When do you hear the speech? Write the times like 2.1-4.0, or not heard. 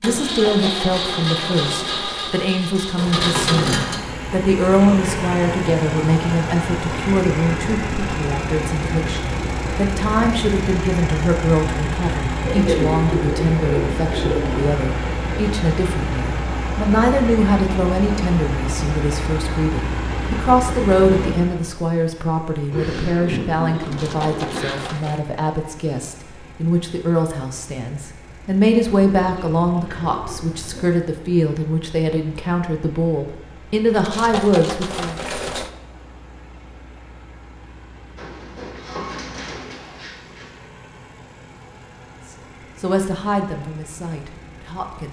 0.0-35.2, 42.2-45.0.